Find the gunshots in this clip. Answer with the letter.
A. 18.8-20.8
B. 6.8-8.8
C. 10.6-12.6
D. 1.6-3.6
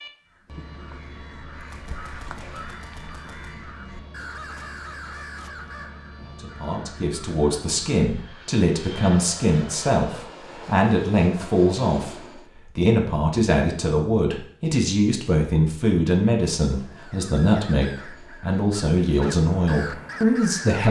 D.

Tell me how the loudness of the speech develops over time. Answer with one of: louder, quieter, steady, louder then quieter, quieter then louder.
steady.